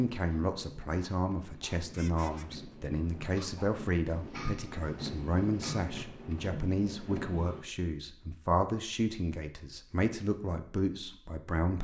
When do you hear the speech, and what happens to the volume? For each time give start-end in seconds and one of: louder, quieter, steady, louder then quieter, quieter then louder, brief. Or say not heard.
0.0-11.8 steady.